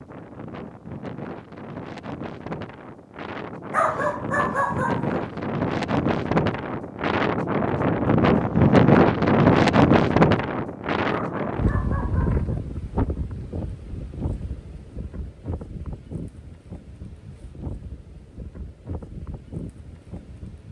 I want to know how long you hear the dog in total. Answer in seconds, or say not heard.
3 s.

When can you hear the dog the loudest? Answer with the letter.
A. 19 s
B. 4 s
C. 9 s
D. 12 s
B.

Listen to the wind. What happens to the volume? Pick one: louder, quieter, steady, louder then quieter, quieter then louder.
louder then quieter.